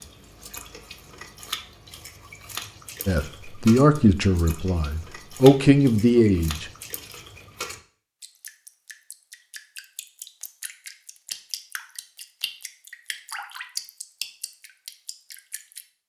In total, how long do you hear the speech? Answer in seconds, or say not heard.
4 s.